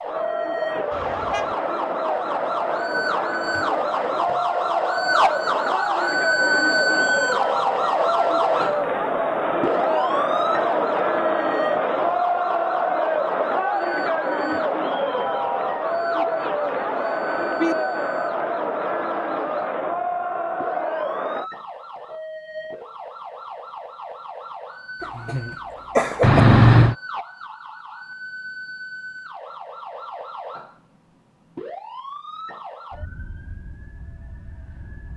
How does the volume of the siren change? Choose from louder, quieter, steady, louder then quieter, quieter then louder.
quieter.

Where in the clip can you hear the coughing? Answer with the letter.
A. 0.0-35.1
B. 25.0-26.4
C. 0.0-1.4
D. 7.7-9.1
B.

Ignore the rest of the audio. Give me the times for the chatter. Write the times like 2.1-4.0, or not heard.
0.0-21.5.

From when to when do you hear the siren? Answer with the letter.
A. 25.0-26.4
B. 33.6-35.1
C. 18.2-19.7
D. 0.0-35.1
D.